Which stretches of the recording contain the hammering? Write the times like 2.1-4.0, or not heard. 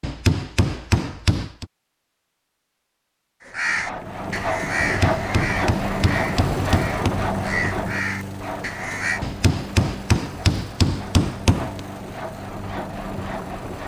0.0-1.6, 4.8-7.2, 9.2-11.8.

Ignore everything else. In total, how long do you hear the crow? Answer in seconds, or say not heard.
6 s.